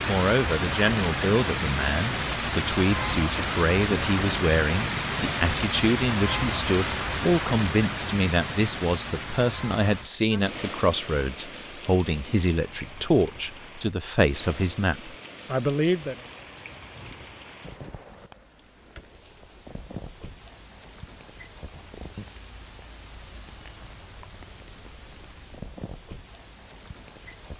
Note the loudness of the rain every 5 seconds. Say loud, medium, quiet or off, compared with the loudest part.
loud, loud, quiet, quiet, quiet, quiet.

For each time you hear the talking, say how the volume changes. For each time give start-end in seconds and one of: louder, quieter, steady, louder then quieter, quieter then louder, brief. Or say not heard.
0.1-16.1 steady.